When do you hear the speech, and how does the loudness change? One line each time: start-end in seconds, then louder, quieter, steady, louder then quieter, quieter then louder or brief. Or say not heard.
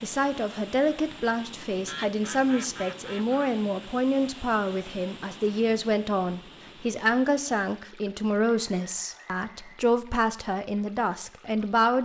0.0-12.0 steady.